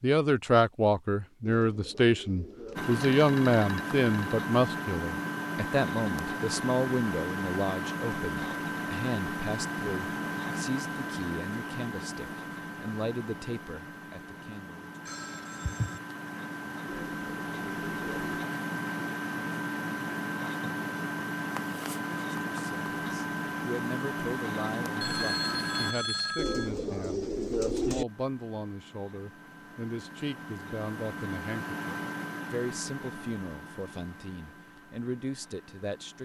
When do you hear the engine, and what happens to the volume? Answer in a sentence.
You can hear the engine from 2.8 to 25.9 s, getting quieter then louder; and from 28.1 to 36.2 s, getting louder then quieter.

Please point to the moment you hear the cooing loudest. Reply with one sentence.
The loudest moment of the cooing is at 28 seconds.